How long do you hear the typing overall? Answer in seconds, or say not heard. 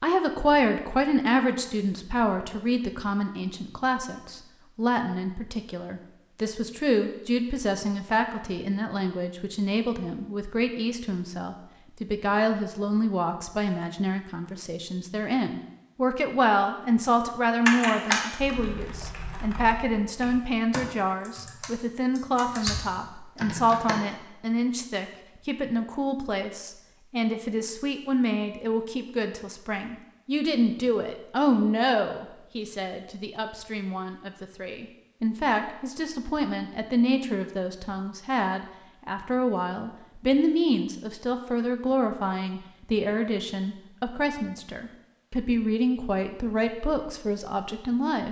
6 s.